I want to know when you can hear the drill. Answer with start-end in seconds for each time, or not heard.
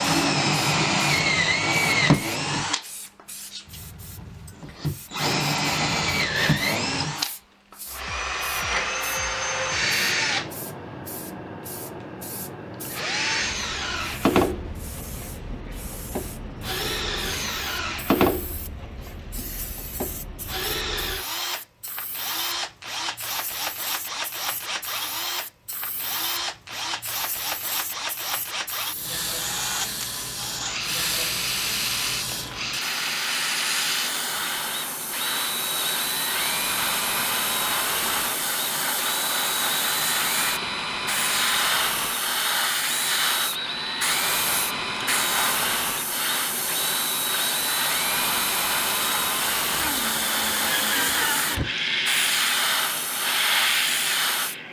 0.0-54.6.